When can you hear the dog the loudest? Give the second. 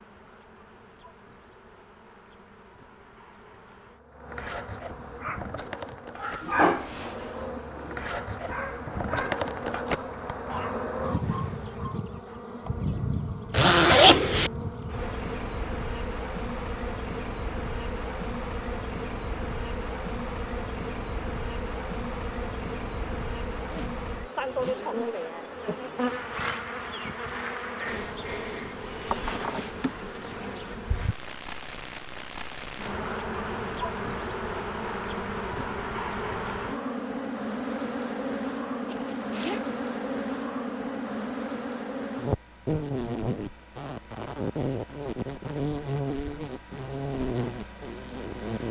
7 s.